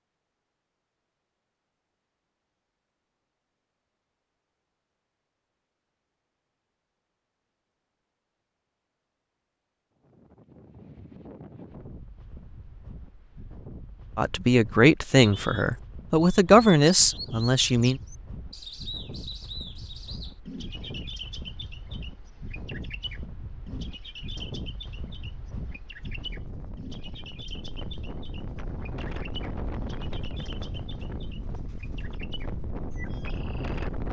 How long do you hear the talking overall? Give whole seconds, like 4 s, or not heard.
4 s.